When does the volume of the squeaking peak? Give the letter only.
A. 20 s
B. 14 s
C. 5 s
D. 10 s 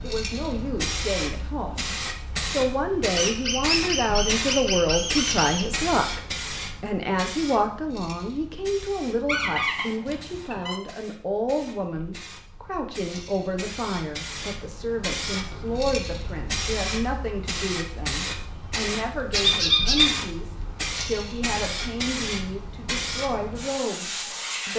A.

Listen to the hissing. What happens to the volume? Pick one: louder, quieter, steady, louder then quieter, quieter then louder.
quieter then louder.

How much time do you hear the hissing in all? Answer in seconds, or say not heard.
25 s.